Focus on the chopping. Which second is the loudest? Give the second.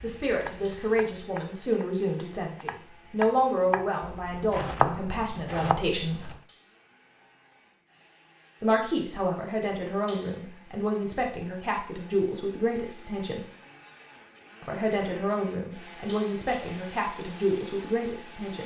5 s.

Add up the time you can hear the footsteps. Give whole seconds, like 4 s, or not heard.
not heard.